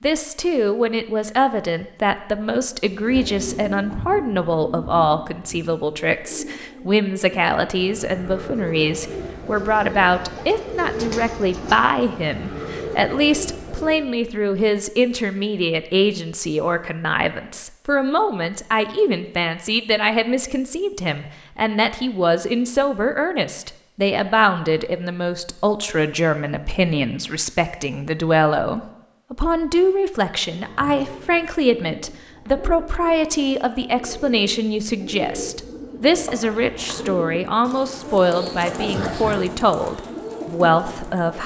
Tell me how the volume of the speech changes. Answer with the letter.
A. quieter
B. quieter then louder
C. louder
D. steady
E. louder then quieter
D.